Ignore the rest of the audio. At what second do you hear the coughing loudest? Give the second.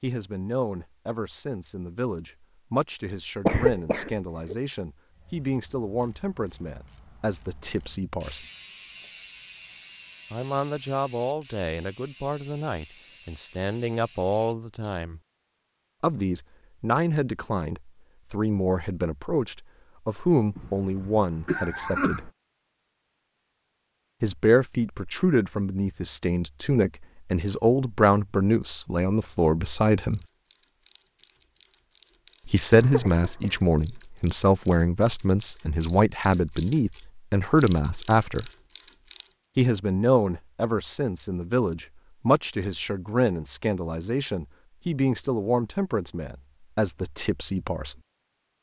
4 s.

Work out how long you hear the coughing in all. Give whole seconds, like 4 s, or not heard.
4 s.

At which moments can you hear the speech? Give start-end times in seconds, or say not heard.
0.0-8.4, 10.3-15.2, 16.0-22.3, 24.2-30.2, 32.5-38.5, 39.5-48.0.